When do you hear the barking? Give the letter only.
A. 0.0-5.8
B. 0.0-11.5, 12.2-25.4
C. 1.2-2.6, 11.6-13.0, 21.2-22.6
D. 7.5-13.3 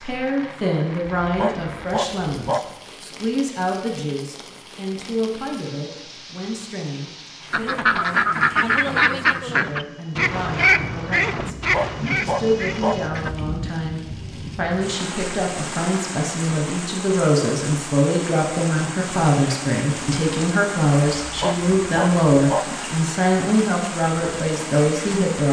C.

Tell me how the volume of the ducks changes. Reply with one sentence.
The loudness of the ducks goes down.